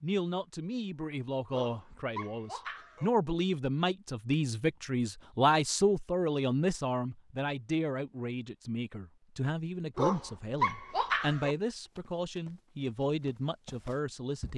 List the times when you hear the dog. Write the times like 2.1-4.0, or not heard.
1.5-3.1, 9.9-11.6.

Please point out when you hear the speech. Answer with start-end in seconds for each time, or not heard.
0.0-14.5.